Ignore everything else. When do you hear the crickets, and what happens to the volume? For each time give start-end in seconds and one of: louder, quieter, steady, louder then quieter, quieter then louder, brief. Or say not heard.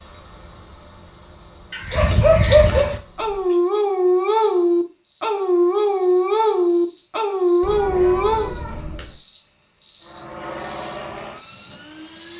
0.0-12.3 louder.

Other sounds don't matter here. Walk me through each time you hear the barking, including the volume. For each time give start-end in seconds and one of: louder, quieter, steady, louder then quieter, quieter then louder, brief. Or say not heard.
1.8-8.6 steady.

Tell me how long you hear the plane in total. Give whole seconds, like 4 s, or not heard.
2 s.